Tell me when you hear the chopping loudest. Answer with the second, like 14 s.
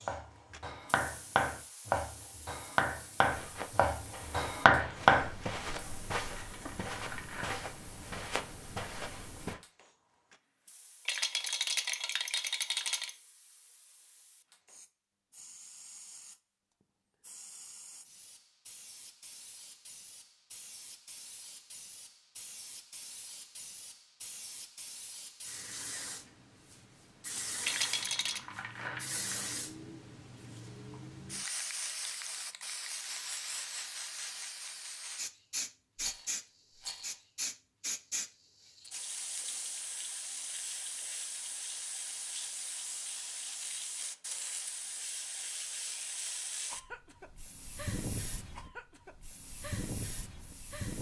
5 s.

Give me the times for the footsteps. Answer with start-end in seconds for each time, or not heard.
3.2-9.6.